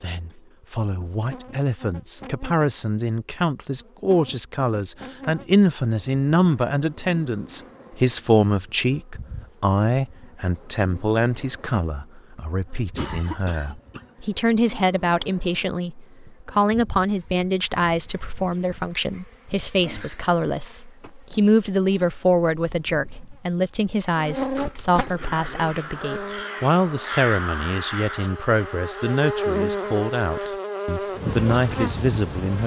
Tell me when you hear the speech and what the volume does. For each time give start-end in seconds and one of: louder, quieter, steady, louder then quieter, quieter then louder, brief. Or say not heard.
0.0-32.6 steady.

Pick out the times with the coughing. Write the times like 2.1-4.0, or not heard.
12.9-14.1.